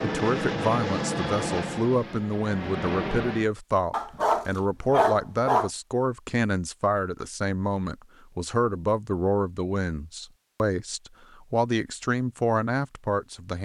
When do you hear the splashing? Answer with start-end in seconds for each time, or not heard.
not heard.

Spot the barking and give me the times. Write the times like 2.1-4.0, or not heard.
3.9-5.7.